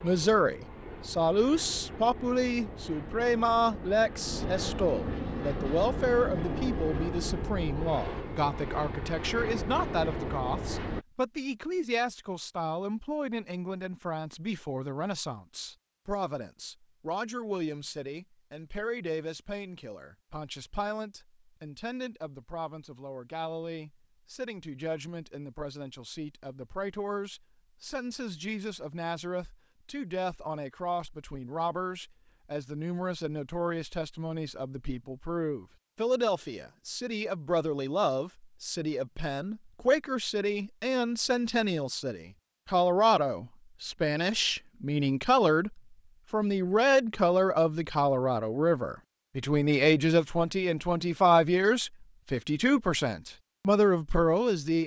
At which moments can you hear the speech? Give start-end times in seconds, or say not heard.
0.0-54.8.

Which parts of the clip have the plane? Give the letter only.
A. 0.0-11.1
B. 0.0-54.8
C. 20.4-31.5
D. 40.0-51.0
A.